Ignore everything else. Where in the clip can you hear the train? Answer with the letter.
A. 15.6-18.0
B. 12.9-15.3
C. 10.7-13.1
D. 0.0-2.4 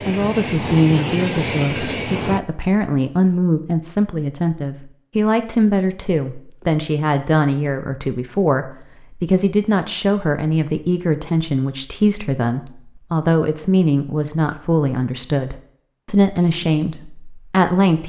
D.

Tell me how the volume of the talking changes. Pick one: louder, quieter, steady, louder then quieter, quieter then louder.
steady.